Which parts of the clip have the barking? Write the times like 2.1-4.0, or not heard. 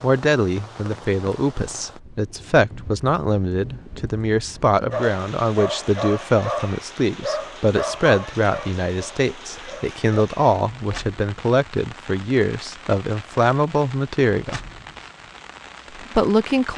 4.8-10.0.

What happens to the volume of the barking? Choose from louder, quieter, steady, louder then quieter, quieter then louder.
quieter.